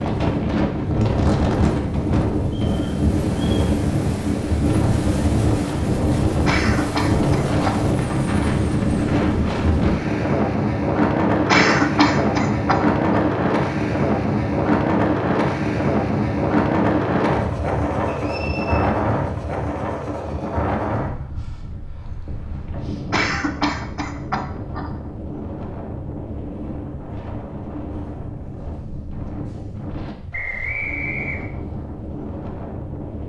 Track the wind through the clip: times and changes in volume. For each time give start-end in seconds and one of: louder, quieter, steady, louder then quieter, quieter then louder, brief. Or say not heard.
0.0-33.2 quieter.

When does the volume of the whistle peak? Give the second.
31 s.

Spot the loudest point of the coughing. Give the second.
12 s.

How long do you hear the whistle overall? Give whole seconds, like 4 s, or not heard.
3 s.